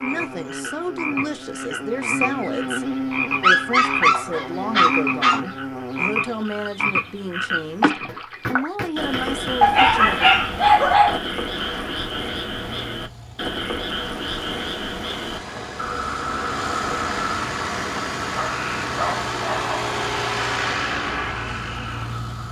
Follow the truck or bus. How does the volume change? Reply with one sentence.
The volume of the truck or bus goes up.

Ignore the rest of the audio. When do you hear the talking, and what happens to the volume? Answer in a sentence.
The talking can be heard from 0.0 to 10.2 s, at a steady volume.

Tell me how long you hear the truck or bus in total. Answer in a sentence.
The truck or bus can be heard for 11 seconds in total.